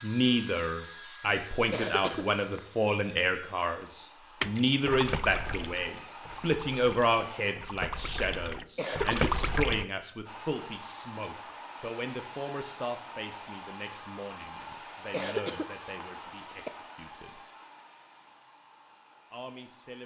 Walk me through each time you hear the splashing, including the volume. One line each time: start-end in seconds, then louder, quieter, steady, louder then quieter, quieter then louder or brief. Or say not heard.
4.4-9.8 quieter then louder.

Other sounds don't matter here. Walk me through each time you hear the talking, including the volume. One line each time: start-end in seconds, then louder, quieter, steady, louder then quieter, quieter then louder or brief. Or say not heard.
0.0-17.4 quieter
19.3-20.0 brief.